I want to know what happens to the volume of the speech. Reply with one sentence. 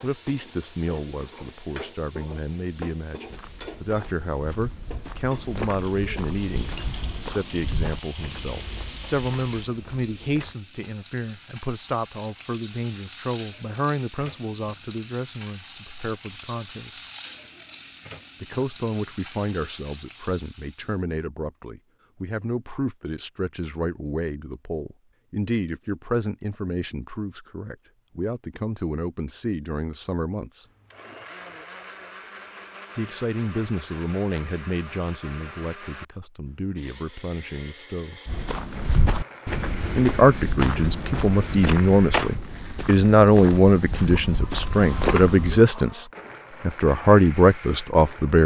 The volume of the speech goes up.